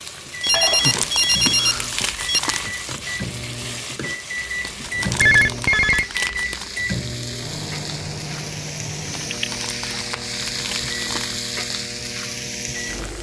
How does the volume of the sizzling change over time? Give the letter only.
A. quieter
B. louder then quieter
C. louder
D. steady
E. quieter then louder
E.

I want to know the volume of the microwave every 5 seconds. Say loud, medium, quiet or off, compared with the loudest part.
loud, loud, medium.